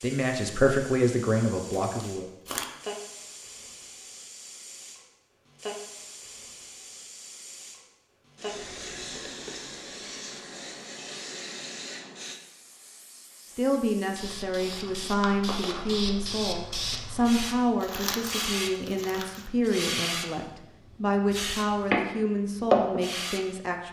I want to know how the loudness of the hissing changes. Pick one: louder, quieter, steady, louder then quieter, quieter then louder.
louder.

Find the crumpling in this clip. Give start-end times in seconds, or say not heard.
1.7-2.7, 17.8-19.5.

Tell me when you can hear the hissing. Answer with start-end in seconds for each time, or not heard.
0.0-23.4.